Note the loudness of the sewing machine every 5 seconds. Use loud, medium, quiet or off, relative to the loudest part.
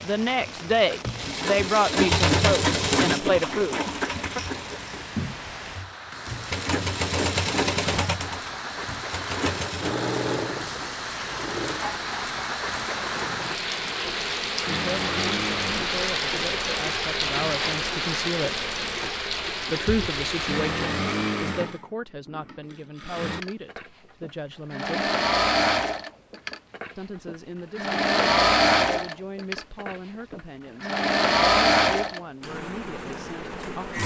loud, medium, medium, medium, medium, loud, loud.